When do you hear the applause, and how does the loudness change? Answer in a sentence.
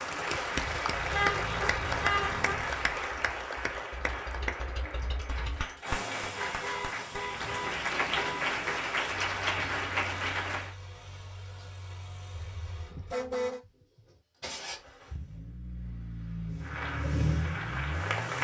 You can hear the applause from 0.0 to 10.8 s, getting quieter then louder; and briefly from 16.6 to 18.3 s.